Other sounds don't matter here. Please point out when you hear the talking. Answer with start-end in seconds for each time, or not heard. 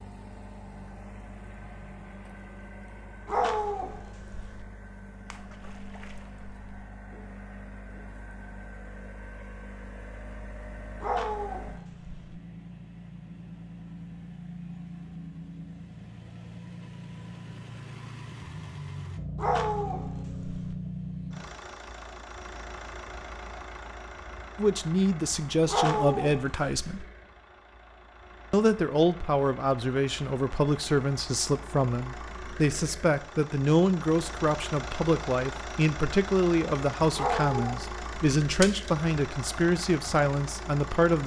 24.6-27.0, 28.5-41.2.